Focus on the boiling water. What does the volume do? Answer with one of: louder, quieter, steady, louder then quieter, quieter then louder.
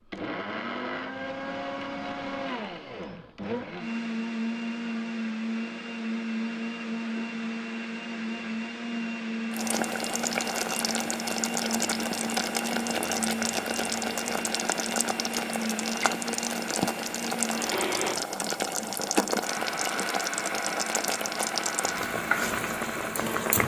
steady.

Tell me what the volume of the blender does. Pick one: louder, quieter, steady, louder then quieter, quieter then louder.
steady.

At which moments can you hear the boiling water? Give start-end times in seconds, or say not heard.
9.5-23.6.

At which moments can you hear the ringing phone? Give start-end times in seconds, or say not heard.
not heard.